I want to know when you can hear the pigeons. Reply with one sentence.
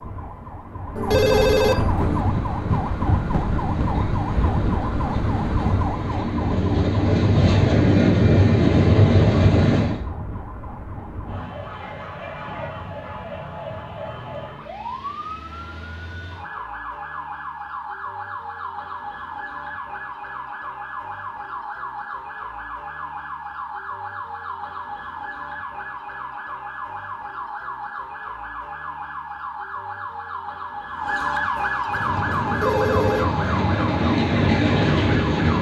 You can't hear the pigeons here.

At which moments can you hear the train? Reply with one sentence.
The train can be heard from 1.9 to 10.0 s and from 31.9 to 35.5 s.